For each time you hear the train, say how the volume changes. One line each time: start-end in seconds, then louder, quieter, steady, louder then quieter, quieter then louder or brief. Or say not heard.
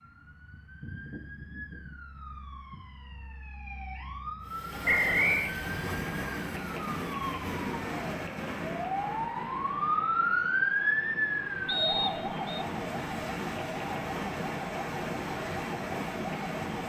4.4-16.8 quieter then louder.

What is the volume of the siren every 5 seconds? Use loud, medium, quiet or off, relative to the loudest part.
quiet, loud, loud, medium.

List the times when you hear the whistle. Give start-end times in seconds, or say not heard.
4.8-5.5, 11.7-12.7.